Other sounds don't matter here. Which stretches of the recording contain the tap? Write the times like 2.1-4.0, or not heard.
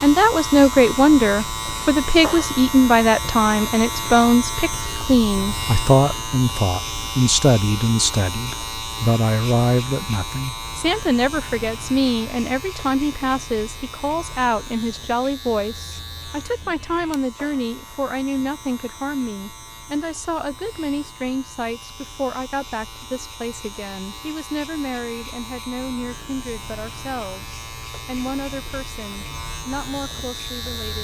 not heard.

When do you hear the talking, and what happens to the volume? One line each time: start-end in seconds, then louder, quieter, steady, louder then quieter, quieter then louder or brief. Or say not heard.
0.0-30.9 quieter.